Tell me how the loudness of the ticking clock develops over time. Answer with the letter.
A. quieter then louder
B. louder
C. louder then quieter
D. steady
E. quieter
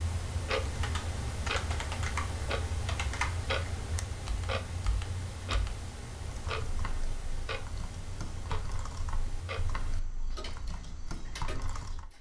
E.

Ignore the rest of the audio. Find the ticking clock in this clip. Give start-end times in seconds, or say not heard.
0.0-12.1.